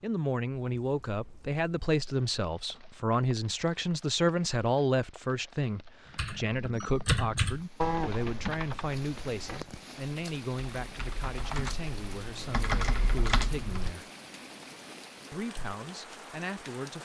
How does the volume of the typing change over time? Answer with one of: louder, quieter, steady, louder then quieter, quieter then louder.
quieter then louder.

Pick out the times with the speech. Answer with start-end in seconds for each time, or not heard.
0.0-14.1, 15.3-17.0.